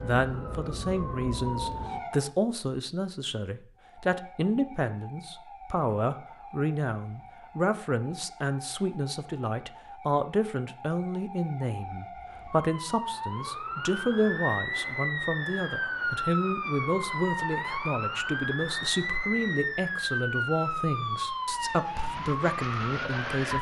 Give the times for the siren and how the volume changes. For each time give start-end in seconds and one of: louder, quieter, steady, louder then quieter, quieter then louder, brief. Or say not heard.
0.0-2.3 brief
3.8-23.5 louder.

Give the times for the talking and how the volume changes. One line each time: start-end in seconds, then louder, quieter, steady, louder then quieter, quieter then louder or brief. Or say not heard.
0.0-23.5 steady.